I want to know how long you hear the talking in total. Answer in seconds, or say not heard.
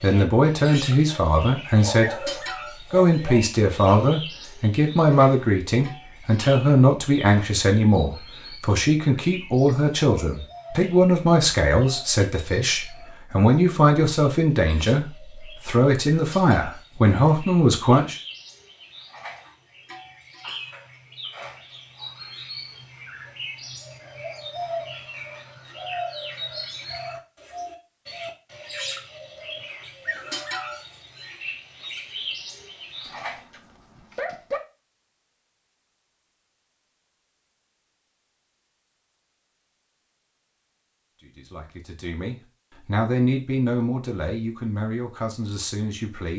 23 s.